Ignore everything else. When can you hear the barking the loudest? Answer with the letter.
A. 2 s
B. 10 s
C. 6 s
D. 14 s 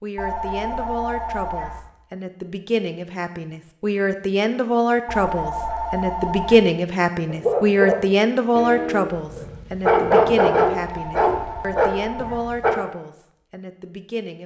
B.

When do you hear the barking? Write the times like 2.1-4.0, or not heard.
7.2-12.8.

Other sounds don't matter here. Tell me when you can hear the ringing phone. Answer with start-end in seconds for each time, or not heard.
0.1-1.8, 5.0-6.6, 10.8-12.5.